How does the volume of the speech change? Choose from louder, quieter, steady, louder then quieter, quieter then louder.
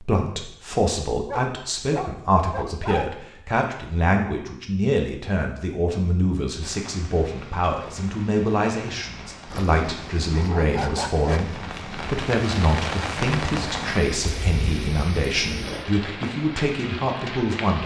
steady.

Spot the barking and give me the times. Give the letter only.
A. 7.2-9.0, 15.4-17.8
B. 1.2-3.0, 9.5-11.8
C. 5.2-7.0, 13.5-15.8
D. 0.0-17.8
B.